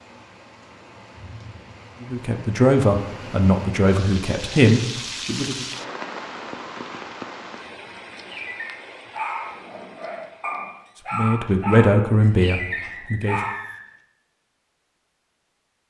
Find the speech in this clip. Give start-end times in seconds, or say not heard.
2.0-5.7, 11.1-13.4.